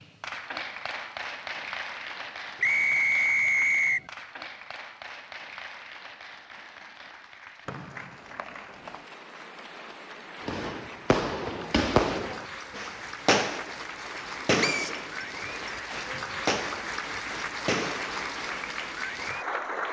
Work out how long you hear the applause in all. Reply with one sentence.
The applause can be heard for 20 seconds in total.